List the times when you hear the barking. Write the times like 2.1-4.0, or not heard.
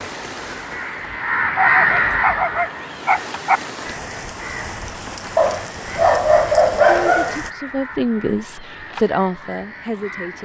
1.6-3.6, 5.3-7.3.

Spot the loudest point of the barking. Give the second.
7 s.